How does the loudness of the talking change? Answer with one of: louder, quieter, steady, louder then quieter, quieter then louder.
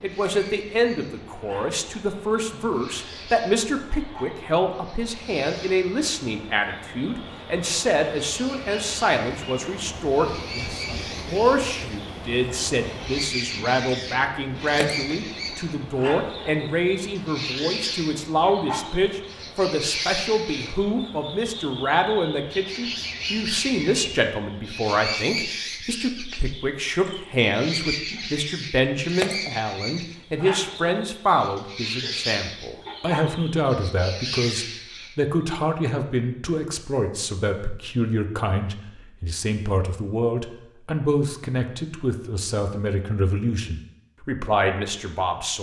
steady.